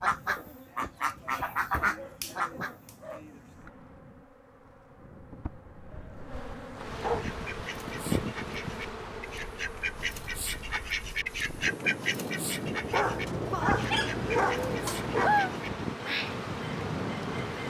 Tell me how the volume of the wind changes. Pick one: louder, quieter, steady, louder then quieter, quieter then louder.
louder.